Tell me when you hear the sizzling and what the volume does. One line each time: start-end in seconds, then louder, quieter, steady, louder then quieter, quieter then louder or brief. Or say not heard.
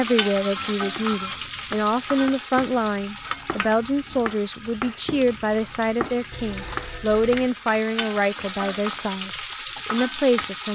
0.0-10.6 quieter then louder.